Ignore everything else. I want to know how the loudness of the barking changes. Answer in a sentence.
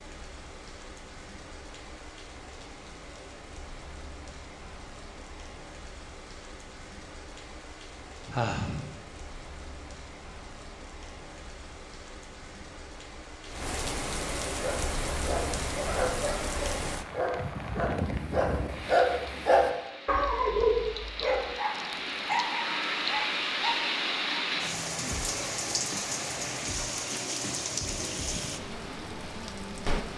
The loudness of the barking goes up, then down.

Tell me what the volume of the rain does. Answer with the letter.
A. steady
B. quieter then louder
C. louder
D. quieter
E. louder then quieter
C.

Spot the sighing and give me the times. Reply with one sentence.
You can hear the sighing from 8.2 to 9.0 s.